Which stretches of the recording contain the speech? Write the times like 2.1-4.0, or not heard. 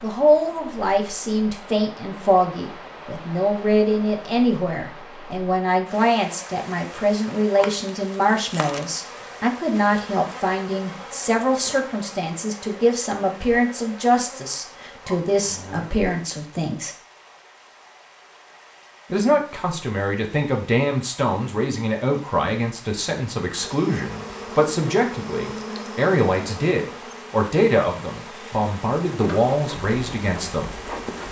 0.0-16.9, 19.1-30.8.